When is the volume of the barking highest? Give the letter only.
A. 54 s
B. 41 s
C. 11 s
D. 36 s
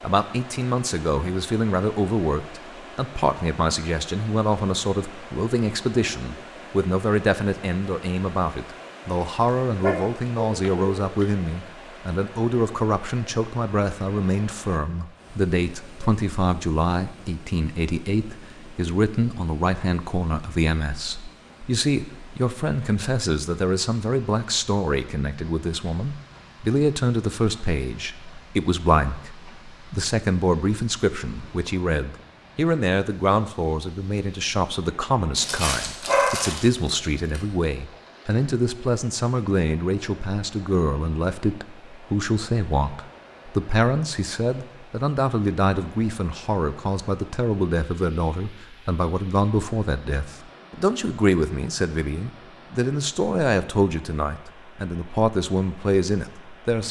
D.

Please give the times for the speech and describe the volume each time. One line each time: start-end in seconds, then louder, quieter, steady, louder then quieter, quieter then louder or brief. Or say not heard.
0.0-56.8 steady.